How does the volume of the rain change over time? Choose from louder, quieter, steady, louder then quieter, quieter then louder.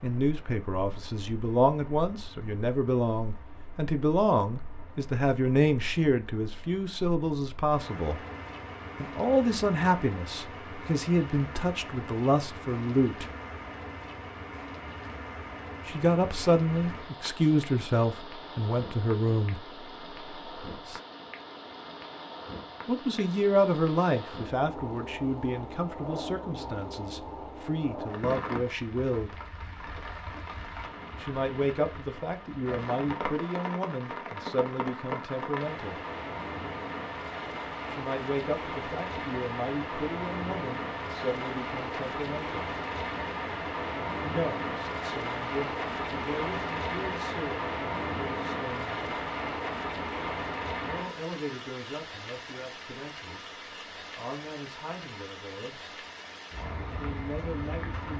louder.